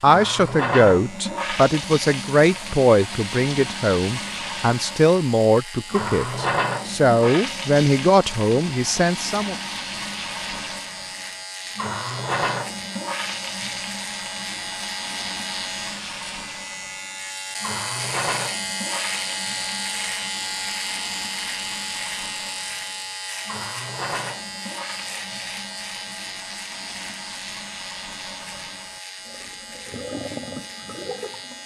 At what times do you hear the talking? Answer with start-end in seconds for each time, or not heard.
0.0-9.6.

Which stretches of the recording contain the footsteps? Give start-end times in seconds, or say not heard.
not heard.